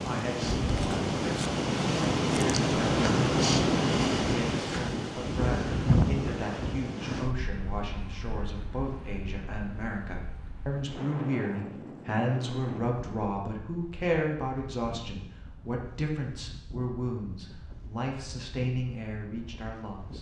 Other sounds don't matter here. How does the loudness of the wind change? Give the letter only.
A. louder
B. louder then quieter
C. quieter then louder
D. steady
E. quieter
E.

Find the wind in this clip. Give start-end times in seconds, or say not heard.
0.0-20.1.